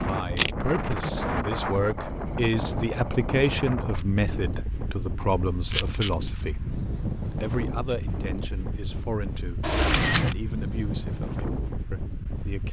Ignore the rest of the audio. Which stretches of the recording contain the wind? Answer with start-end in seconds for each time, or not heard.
0.0-12.6.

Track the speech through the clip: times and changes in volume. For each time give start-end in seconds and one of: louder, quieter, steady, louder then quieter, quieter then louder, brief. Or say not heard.
0.0-12.6 quieter.